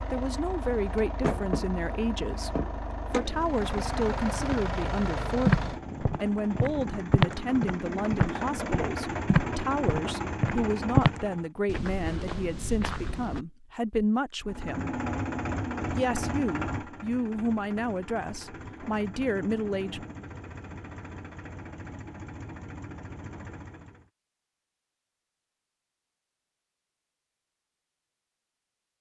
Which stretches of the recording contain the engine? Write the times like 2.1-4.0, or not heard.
0.0-11.5, 14.4-24.1.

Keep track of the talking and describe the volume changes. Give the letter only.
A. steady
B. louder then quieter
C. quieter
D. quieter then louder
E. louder
A.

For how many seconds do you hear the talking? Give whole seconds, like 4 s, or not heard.
19 s.